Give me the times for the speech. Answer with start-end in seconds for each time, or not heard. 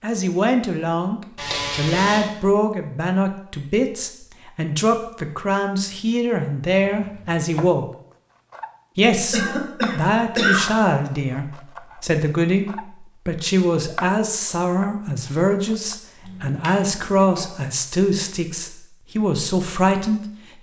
0.0-7.8, 8.9-20.2.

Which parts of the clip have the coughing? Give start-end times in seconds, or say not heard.
1.4-2.3, 9.3-10.7, 16.2-17.4.